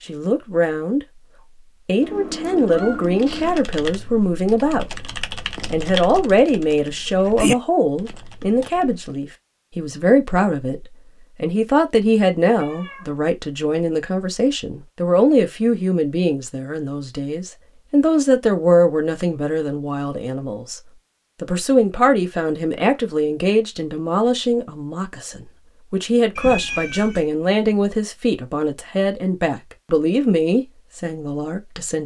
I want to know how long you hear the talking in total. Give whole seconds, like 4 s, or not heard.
30 s.